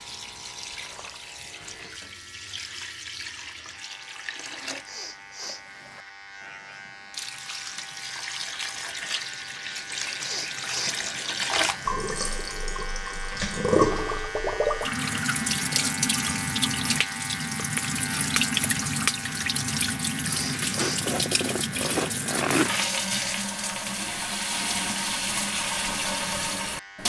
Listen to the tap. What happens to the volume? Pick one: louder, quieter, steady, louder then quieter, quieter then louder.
louder.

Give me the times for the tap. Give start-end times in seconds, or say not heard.
0.0-27.0.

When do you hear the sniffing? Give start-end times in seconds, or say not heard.
4.8-5.7, 10.2-10.9, 20.2-21.1.